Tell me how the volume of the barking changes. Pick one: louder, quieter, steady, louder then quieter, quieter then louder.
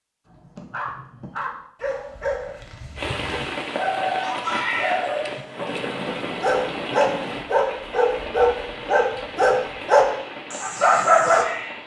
louder.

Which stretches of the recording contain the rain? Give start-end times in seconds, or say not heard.
3.0-11.8.